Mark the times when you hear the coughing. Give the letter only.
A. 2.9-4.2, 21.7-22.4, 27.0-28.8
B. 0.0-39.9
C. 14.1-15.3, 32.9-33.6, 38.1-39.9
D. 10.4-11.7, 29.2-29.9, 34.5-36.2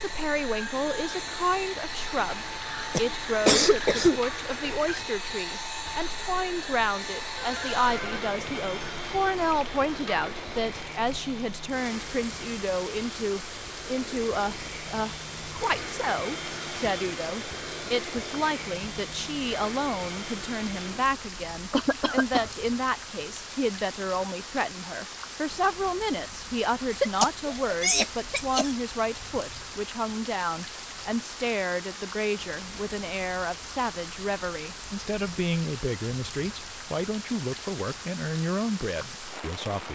A.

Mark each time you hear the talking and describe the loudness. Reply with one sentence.
The talking can be heard from 0.0 to 39.9 s, at a steady volume.